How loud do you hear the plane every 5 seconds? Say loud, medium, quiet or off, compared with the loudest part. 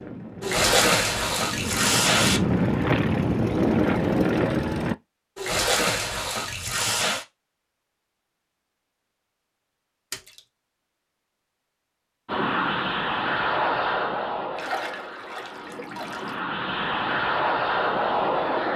loud, off, loud, loud.